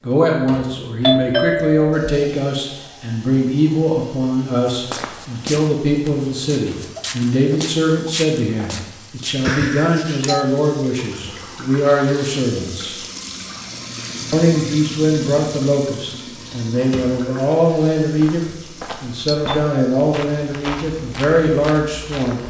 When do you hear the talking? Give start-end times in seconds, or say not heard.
0.0-12.9, 14.3-18.4, 19.0-22.4.